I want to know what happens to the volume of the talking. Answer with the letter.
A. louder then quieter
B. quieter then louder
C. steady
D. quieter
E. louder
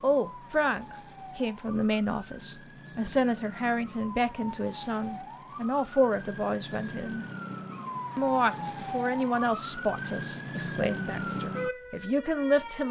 C.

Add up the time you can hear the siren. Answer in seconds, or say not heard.
13 s.